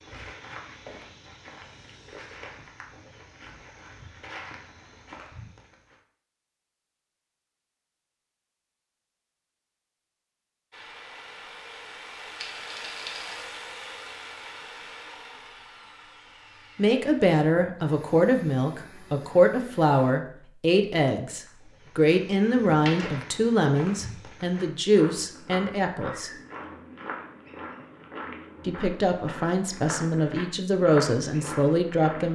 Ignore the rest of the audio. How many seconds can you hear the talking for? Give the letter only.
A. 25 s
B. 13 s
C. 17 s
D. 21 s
B.